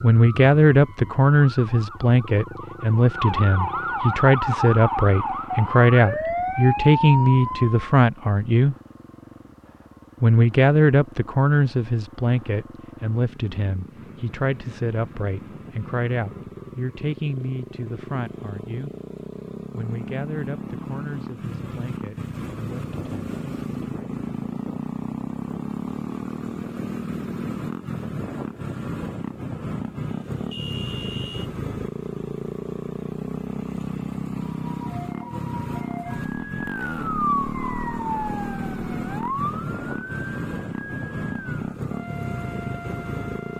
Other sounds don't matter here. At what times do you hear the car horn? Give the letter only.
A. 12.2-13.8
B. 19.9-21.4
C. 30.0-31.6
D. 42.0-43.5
C.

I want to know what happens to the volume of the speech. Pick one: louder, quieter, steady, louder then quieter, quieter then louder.
quieter.